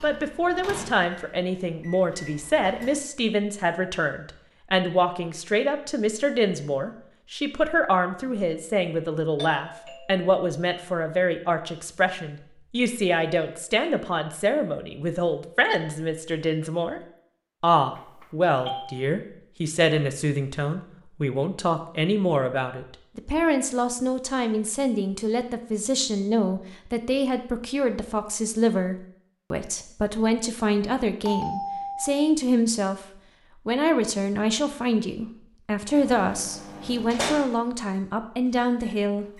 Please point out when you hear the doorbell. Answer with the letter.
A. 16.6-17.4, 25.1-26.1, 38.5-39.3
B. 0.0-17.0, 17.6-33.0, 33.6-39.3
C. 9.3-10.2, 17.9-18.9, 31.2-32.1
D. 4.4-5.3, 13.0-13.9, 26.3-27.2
C.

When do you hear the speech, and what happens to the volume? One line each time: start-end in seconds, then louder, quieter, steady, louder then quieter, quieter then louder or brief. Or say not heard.
0.0-17.0 steady
17.6-33.0 steady
33.6-39.3 steady.